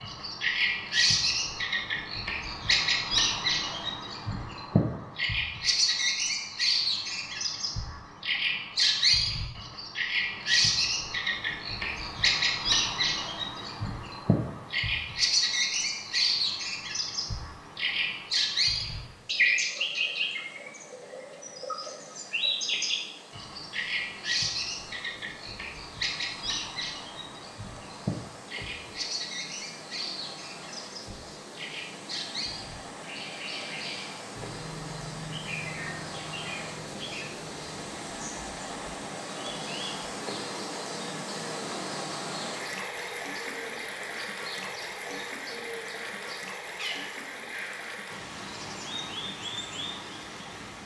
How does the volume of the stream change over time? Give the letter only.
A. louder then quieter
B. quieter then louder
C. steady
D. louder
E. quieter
D.